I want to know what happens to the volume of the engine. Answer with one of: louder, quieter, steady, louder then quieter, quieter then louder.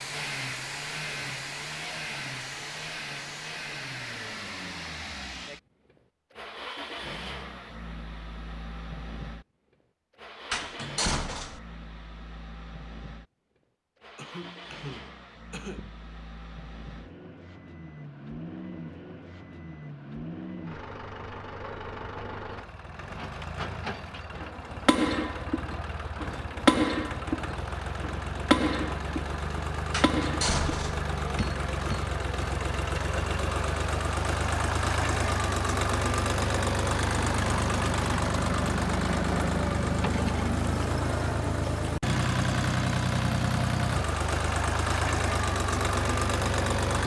quieter then louder.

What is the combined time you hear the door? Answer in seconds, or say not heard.
2 s.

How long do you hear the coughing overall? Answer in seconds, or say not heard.
2 s.